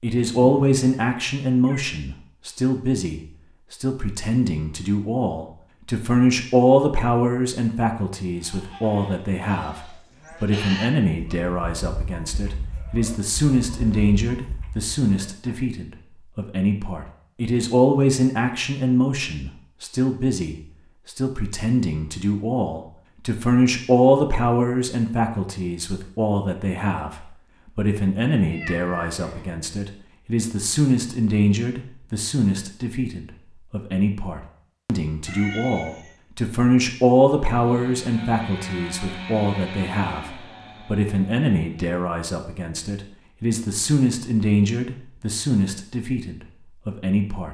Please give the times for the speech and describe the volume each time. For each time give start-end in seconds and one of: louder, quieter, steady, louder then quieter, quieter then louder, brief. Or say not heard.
0.0-47.5 steady.